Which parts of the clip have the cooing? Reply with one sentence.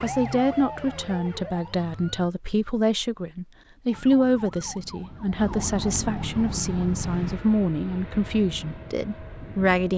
The cooing can't be heard in this clip.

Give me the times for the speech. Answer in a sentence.
The speech can be heard from 0.0 to 9.9 s.